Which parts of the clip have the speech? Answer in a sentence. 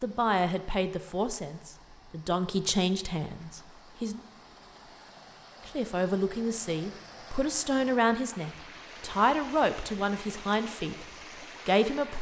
You can hear the speech from 0.0 to 4.2 s, from 5.7 to 11.1 s and from 11.7 to 12.1 s.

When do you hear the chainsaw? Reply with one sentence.
The chainsaw can't be heard in this clip.